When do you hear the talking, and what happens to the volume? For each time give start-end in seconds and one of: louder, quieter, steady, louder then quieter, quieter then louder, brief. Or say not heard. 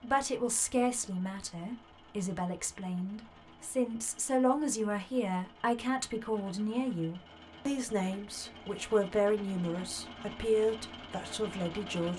0.0-12.1 steady.